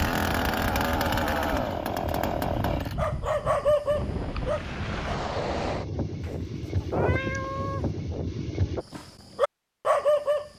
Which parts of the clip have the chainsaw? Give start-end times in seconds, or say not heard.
0.0-3.1.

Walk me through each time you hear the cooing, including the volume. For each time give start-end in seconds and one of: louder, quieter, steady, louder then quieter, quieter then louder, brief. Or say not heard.
not heard.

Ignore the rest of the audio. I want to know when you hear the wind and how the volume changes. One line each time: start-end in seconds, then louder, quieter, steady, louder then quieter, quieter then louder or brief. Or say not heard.
0.0-8.8 louder.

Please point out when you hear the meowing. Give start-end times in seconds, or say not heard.
6.2-7.8.